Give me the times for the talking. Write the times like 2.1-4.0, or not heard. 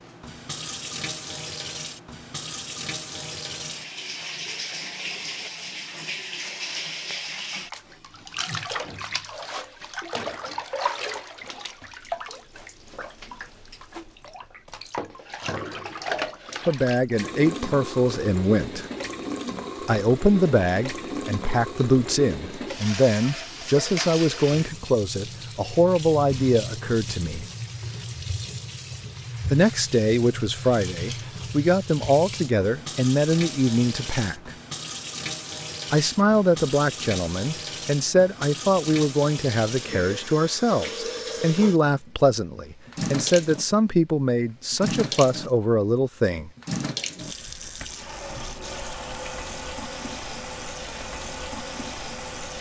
16.6-18.9, 19.8-27.4, 29.5-34.5, 35.9-46.5.